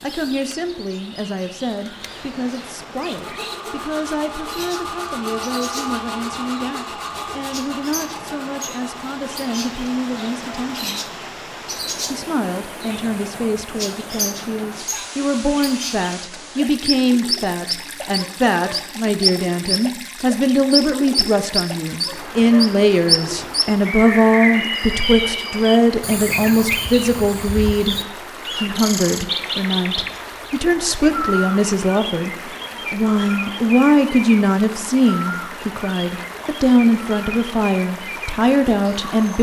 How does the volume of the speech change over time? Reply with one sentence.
The loudness of the speech goes up.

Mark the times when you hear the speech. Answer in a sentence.
The speech can be heard from 0.0 to 11.1 s and from 12.1 to 39.3 s.